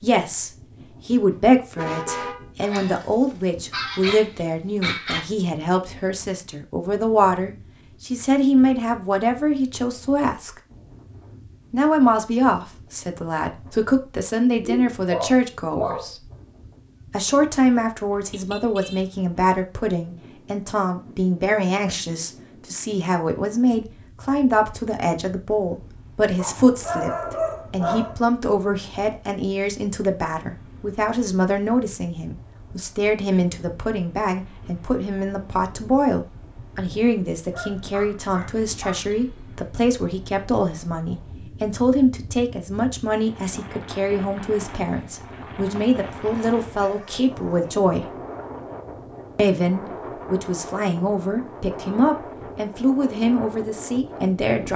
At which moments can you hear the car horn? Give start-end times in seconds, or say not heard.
1.3-2.5, 18.3-19.1, 39.1-39.6.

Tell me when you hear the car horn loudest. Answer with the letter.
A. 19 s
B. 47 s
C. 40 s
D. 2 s
D.